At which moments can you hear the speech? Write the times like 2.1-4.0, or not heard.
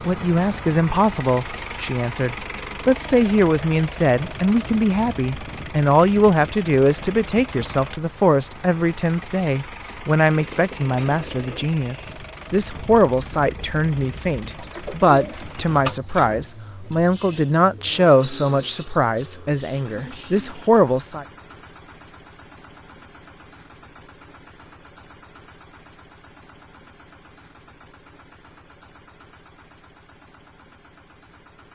0.1-21.2.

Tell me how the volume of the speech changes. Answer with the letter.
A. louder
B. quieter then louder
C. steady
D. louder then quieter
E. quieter
C.